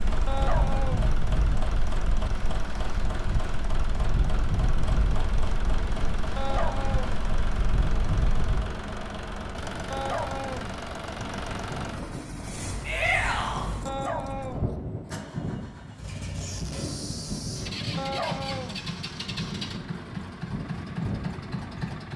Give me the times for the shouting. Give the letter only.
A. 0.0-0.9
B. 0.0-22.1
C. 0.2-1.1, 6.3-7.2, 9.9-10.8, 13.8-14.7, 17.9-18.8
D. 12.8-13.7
D.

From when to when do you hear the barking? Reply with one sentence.
You can hear the barking from 0.2 to 1.1 s, from 6.3 to 7.2 s, from 9.9 to 10.8 s, from 13.8 to 14.7 s and from 17.9 to 18.8 s.